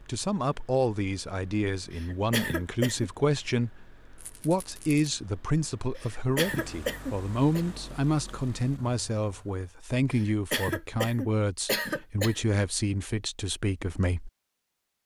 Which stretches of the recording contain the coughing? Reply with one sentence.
You can hear the coughing from 1.9 to 3.1 s, from 6.0 to 7.7 s and from 10.1 to 12.3 s.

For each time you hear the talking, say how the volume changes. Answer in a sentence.
You can hear the talking from 0.0 to 14.3 s, at a steady volume.